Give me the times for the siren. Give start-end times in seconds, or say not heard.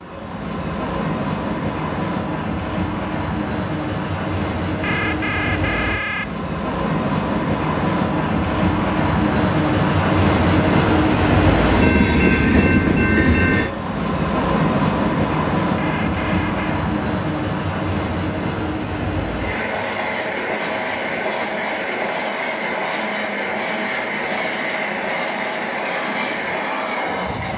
not heard.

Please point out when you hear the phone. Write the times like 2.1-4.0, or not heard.
4.8-6.3, 15.8-16.6.